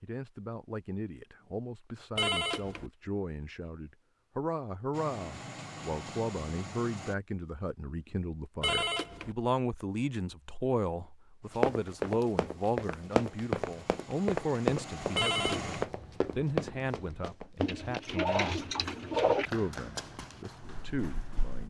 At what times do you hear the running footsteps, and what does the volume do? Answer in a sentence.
The running footsteps can be heard from 11.6 to 21.6 s, getting quieter.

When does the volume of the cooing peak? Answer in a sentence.
The volume of the cooing peaks at 19 seconds.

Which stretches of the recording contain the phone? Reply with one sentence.
You can hear the phone from 2.1 to 2.9 s, from 8.6 to 9.3 s and from 15.2 to 15.8 s.